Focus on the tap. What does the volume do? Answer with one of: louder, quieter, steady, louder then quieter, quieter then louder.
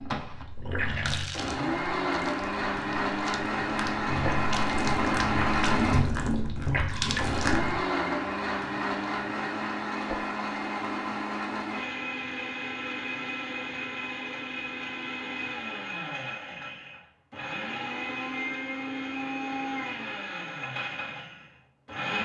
quieter then louder.